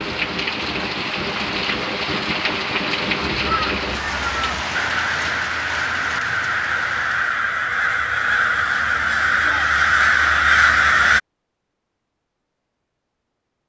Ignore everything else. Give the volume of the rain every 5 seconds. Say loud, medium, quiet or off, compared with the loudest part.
loud, medium, off.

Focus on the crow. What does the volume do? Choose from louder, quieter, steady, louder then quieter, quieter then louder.
louder.